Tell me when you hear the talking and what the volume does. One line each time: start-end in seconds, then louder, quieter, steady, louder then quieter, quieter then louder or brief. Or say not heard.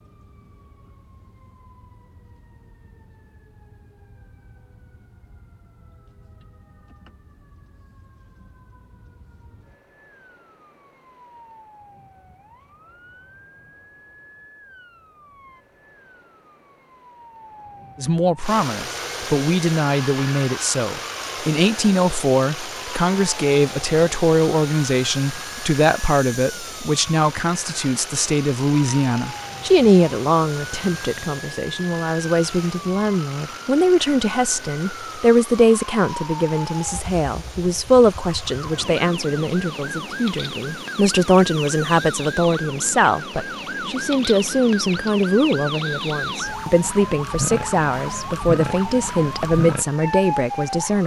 17.9-51.0 steady.